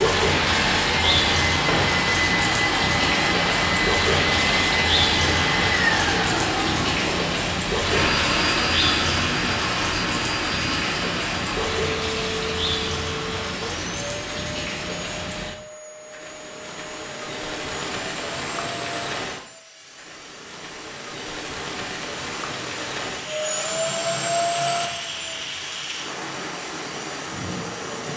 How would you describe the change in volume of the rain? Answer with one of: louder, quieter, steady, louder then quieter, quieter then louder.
quieter.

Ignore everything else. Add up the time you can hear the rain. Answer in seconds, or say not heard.
28 s.